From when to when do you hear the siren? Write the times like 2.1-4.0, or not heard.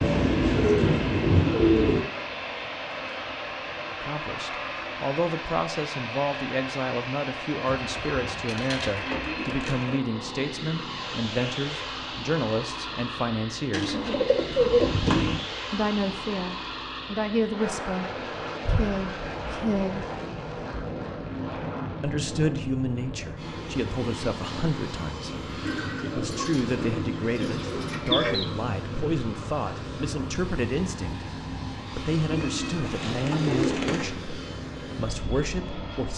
not heard.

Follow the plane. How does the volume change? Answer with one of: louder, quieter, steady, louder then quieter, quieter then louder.
steady.